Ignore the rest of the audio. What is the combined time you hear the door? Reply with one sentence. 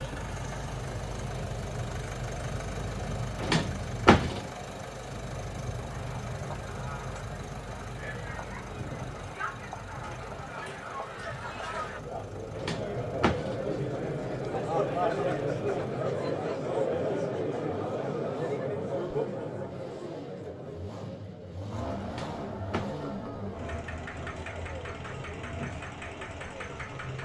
You can hear the door for 3 seconds altogether.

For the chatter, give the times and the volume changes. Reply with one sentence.
The chatter can be heard from 6.0 to 27.1 s, getting louder then quieter.